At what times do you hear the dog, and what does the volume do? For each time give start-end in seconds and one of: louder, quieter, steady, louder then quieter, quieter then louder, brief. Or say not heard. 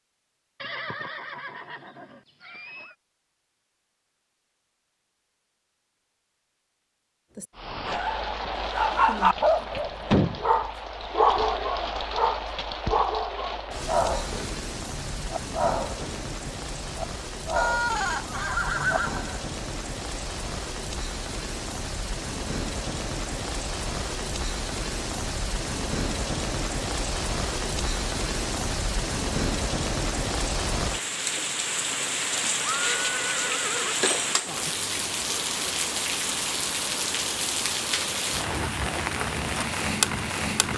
7.3-19.0 quieter.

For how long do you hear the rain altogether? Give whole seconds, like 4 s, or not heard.
33 s.